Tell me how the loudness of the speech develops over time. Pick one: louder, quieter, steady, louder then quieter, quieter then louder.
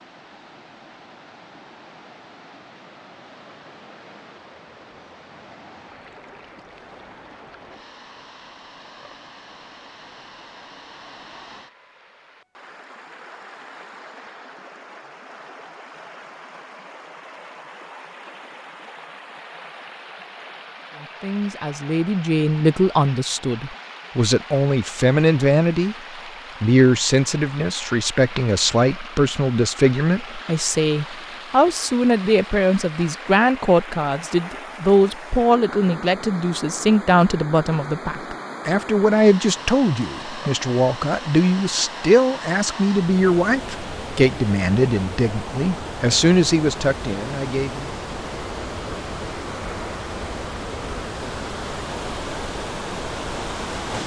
steady.